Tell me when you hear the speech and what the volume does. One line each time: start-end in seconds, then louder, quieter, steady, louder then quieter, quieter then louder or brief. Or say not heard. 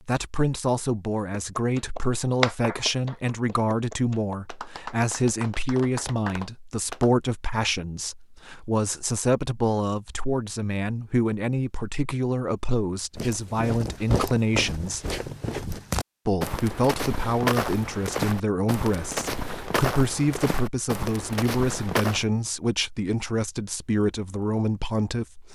0.1-15.0 steady
16.2-25.5 steady.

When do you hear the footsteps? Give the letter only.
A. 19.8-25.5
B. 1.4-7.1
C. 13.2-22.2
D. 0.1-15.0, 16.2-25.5
C.